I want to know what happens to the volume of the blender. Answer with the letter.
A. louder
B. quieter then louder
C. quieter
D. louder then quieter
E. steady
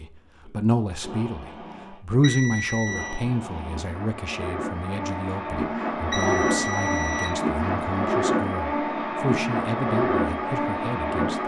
A.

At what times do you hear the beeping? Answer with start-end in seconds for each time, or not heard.
2.2-3.2, 6.1-7.3.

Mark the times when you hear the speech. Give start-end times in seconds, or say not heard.
0.0-11.4.